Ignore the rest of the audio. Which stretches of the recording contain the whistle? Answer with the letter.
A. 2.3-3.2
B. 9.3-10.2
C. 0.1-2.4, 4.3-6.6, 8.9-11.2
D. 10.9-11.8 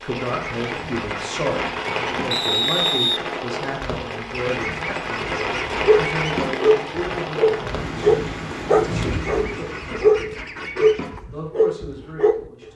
A.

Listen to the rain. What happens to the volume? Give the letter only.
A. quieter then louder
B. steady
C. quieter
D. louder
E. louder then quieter
B.